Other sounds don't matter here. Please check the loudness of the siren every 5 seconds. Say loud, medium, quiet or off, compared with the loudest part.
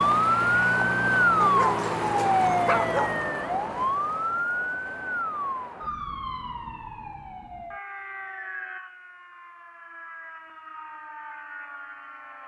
loud, quiet, quiet.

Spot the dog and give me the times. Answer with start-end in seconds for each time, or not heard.
1.4-3.1.